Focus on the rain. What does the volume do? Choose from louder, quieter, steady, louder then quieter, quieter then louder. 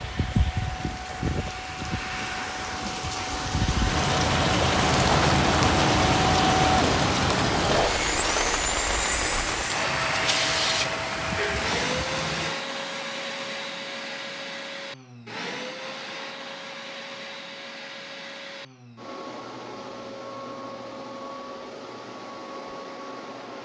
louder then quieter.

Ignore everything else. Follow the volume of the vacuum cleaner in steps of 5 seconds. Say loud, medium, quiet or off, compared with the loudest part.
medium, loud, loud, medium, medium.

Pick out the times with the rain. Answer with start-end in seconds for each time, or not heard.
0.0-12.6.